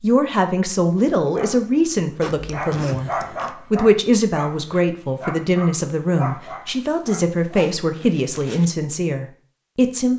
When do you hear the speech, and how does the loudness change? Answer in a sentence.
The speech can be heard from 0.0 to 10.1 s, at a steady volume.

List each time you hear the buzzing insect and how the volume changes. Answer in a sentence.
The buzzing insect can't be heard in this clip.